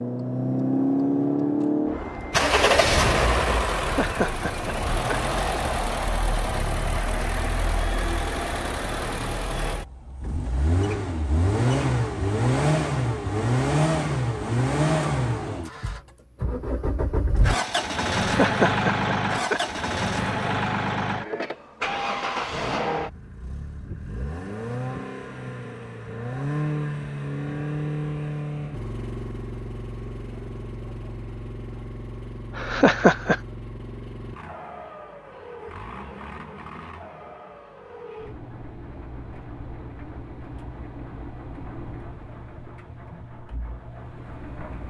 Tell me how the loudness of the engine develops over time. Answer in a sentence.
The loudness of the engine goes down.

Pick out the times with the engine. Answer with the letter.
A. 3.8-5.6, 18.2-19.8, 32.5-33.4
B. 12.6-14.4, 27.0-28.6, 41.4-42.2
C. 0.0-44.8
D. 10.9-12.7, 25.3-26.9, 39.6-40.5
C.